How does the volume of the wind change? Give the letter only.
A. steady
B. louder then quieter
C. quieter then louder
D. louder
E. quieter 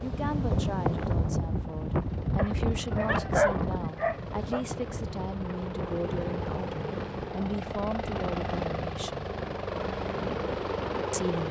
E.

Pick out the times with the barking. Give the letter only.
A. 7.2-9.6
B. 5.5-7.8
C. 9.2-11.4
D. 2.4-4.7
D.